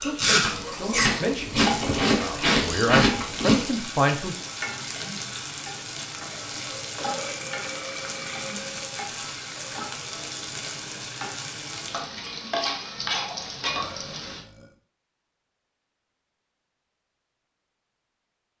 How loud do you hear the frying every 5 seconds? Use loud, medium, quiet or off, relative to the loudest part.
loud, loud, loud, off.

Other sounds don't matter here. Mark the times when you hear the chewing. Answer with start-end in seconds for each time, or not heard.
0.0-3.6.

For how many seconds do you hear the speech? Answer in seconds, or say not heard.
4 s.